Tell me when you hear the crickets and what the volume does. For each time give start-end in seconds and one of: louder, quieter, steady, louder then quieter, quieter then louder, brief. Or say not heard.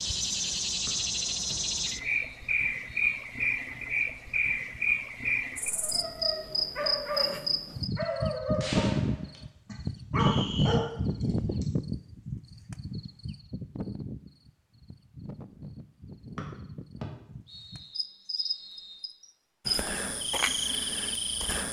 0.0-21.6 quieter then louder.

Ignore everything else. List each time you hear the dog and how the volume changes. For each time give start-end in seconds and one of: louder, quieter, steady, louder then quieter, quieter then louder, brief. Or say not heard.
5.8-11.7 steady.